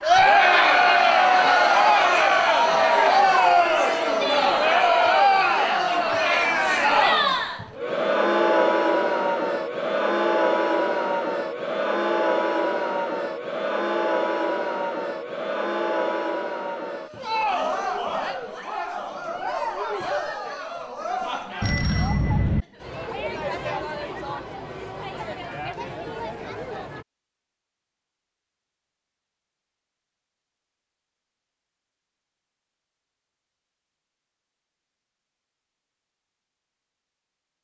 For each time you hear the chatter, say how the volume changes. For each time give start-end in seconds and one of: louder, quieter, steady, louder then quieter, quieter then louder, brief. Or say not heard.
0.0-27.1 quieter.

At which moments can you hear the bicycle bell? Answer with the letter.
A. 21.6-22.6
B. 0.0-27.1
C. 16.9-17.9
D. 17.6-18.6
A.